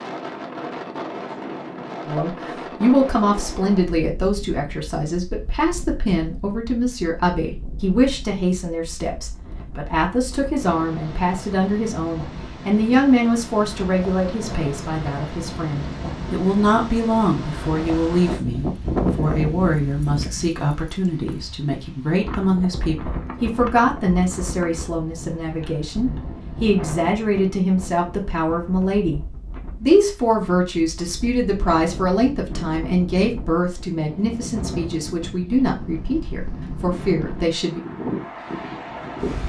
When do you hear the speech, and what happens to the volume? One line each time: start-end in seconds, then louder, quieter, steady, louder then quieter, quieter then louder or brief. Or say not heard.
2.0-37.8 steady.